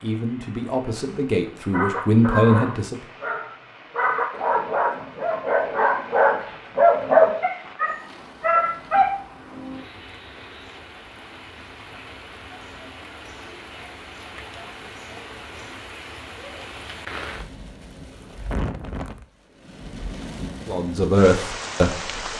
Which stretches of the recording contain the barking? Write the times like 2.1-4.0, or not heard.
1.7-9.1.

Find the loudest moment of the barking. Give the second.
7 s.